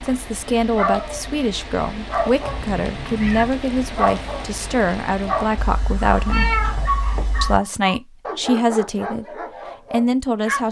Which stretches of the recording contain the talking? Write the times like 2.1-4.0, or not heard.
0.0-6.5, 7.4-10.6.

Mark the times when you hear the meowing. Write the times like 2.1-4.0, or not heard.
2.5-3.5, 5.5-7.6.